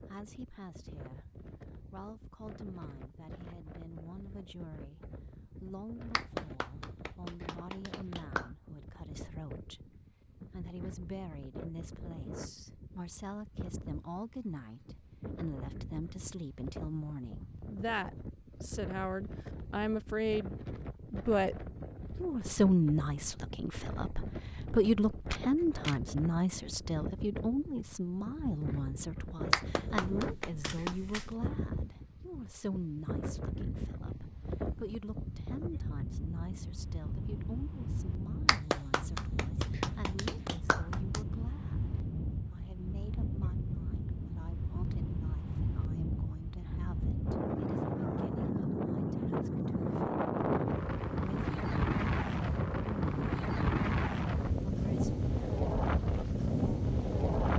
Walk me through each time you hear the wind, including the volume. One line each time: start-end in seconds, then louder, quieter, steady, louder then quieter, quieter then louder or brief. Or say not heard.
0.0-57.5 louder.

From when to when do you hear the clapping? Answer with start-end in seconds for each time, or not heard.
6.1-8.5, 29.5-30.9, 38.5-41.2.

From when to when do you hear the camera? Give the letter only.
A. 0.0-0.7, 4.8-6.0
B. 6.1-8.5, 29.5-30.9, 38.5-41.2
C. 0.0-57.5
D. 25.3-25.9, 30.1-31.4
D.